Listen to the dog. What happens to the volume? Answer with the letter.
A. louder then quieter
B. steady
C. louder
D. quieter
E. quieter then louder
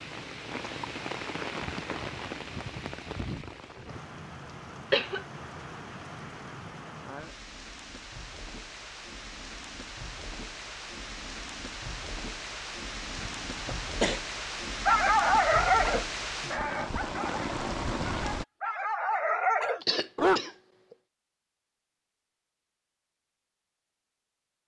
E.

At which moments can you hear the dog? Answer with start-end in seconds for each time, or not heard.
14.8-20.4.